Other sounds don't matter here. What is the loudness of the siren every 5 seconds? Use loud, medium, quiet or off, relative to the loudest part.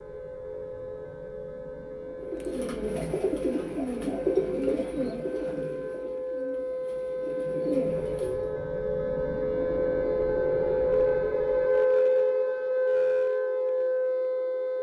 quiet, medium, loud.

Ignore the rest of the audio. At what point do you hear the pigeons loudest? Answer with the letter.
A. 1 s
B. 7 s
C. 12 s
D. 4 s
D.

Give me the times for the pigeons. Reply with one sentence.
You can hear the pigeons from 2.2 to 8.5 s.